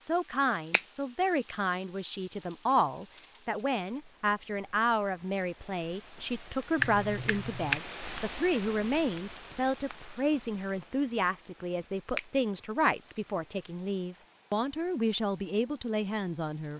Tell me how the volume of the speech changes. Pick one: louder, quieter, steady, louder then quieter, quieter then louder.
steady.